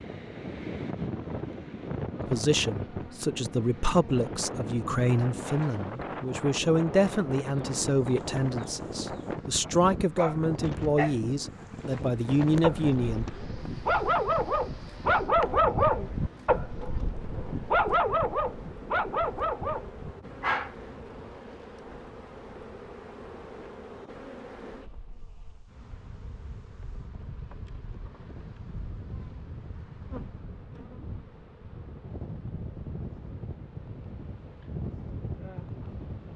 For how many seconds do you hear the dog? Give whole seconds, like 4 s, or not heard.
11 s.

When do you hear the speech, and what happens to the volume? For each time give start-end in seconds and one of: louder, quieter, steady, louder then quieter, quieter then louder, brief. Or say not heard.
2.3-13.2 steady.